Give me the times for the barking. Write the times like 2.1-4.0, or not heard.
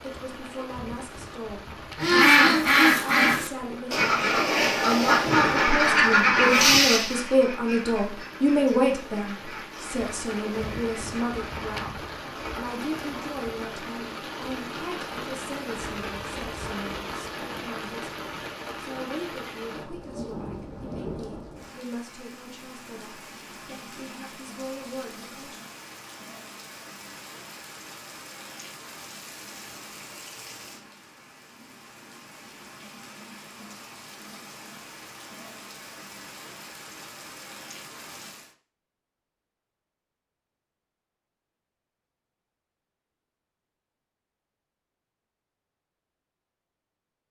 not heard.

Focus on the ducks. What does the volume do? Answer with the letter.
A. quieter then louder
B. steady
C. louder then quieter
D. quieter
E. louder
D.